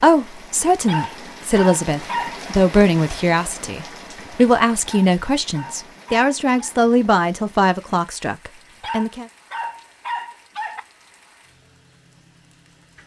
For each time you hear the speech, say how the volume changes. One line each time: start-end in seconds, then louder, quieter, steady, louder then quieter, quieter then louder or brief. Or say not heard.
0.0-9.2 steady.